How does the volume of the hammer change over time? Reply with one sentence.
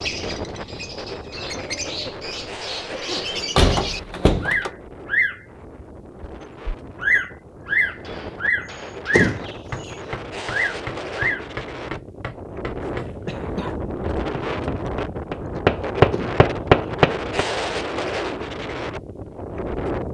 The loudness of the hammer goes up.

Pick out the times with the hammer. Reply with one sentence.
You can hear the hammer from 7.7 to 17.4 s.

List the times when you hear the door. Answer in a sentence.
The door can be heard from 3.1 to 4.7 s, from 9.1 to 9.9 s and from 16.1 to 16.9 s.